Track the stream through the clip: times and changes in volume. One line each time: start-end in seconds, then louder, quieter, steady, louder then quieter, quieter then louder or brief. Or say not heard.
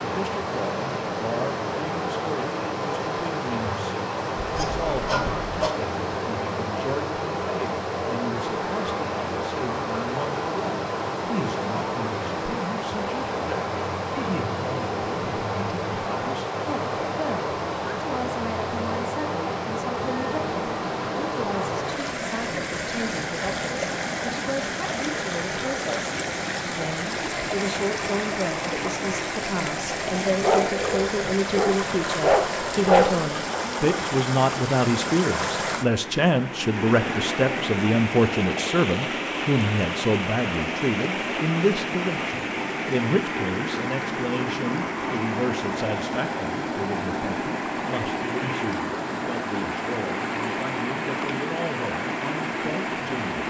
0.0-53.4 steady.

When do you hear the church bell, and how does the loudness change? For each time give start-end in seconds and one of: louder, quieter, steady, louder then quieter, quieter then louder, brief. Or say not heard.
not heard.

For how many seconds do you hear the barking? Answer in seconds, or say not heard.
4 s.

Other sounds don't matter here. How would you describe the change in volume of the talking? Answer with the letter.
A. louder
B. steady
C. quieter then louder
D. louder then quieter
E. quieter
D.